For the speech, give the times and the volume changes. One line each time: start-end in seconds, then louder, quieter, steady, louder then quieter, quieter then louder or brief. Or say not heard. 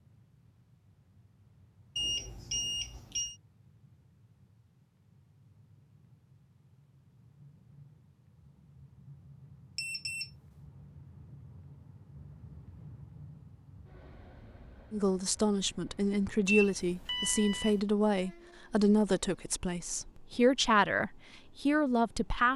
14.9-22.5 steady.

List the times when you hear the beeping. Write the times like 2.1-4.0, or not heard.
1.9-3.4, 9.8-10.3, 16.4-17.8.